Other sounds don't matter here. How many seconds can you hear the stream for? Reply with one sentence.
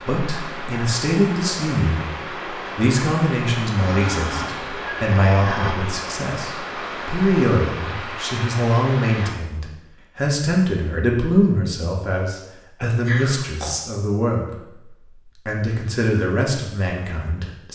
You can hear the stream for 9 seconds altogether.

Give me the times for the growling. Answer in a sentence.
The growling can be heard from 3.8 to 5.8 s and from 13.1 to 13.8 s.